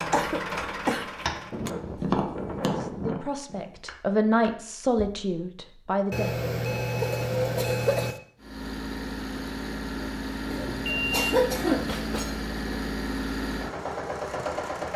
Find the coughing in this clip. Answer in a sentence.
The coughing can be heard from 0.1 to 1.7 s, from 7.0 to 8.2 s and from 10.5 to 11.9 s.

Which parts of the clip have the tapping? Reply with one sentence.
The tapping can be heard from 0.0 to 5.2 s.